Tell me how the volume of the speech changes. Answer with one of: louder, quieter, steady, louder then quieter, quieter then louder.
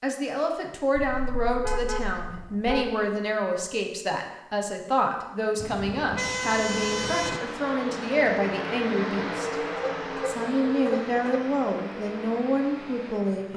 steady.